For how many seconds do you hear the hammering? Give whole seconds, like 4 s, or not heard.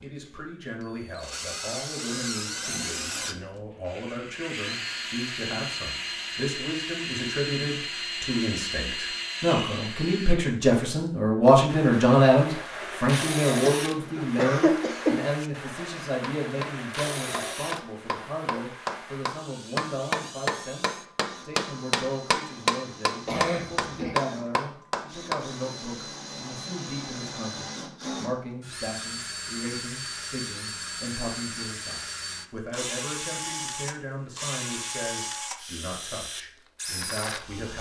9 s.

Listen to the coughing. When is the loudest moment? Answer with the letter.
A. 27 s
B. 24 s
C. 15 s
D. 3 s
C.